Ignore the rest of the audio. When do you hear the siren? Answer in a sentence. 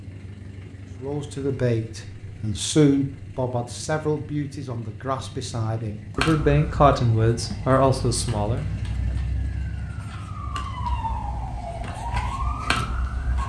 You can hear the siren from 6.2 to 13.4 s.